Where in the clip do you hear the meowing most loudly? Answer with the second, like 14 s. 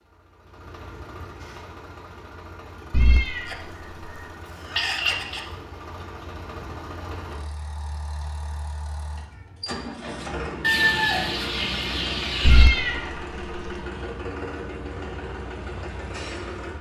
13 s.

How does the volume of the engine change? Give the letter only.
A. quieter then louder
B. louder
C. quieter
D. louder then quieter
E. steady
B.